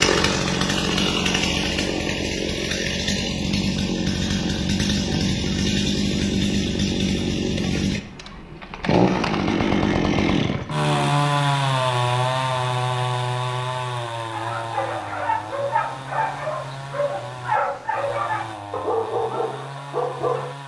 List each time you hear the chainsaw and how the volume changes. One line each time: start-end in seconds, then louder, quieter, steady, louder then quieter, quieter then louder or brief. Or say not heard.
0.0-20.6 quieter.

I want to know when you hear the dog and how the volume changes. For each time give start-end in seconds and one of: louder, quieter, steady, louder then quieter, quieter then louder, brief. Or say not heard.
14.3-20.6 steady.